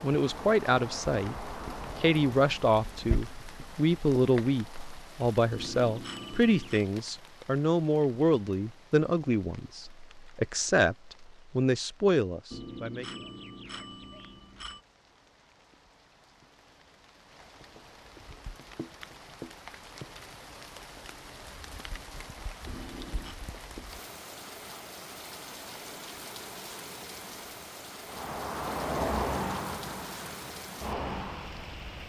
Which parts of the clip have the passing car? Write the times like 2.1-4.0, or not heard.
0.0-5.0, 28.1-32.0.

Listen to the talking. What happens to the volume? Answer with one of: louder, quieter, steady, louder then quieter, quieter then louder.
steady.